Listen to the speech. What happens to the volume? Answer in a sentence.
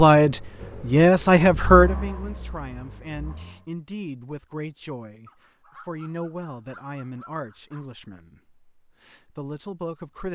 The loudness of the speech goes down.